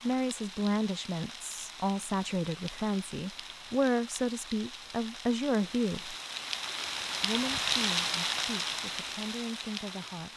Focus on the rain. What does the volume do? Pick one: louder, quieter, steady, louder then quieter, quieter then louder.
louder.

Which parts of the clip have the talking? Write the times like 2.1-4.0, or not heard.
0.0-6.2, 7.2-10.3.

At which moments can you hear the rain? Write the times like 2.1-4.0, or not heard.
0.0-10.3.